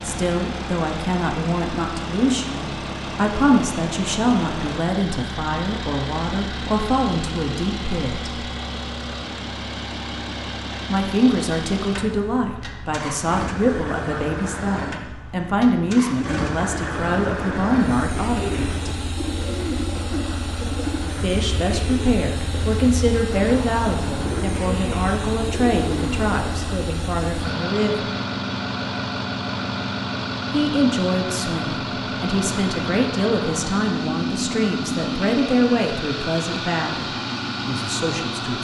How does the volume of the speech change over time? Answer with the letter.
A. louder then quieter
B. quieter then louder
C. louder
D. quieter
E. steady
E.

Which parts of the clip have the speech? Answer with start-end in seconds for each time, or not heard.
0.0-8.4, 10.8-18.9, 21.1-28.1, 30.5-38.5.